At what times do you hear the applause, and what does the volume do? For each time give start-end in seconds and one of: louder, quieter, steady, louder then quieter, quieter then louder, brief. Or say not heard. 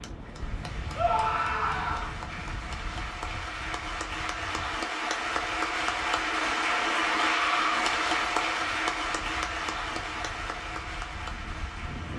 0.0-12.1 louder then quieter.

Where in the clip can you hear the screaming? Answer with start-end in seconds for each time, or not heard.
0.9-2.1, 7.2-7.8.